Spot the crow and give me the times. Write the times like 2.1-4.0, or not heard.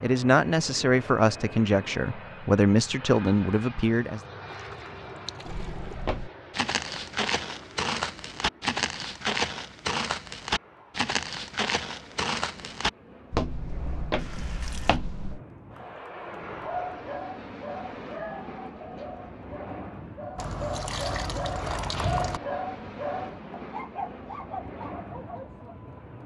not heard.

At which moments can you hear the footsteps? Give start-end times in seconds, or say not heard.
5.5-15.4.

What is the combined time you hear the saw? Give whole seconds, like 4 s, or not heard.
not heard.